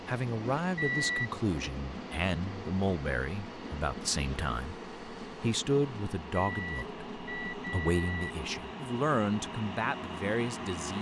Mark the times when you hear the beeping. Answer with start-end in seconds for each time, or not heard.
0.8-1.3, 6.3-8.3.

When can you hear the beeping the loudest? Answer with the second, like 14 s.
1 s.